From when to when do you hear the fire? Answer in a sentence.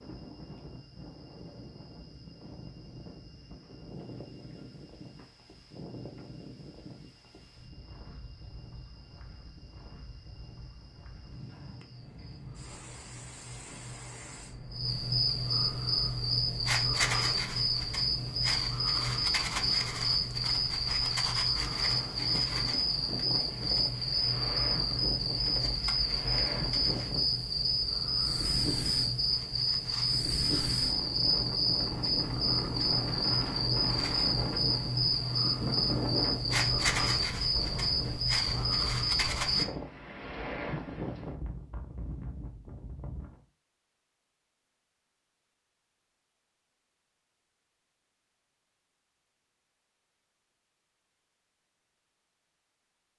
You can't hear the fire here.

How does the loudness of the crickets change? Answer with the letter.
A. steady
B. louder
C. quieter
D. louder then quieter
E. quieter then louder
B.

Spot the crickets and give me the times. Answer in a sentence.
The crickets can be heard from 0.0 to 39.6 s.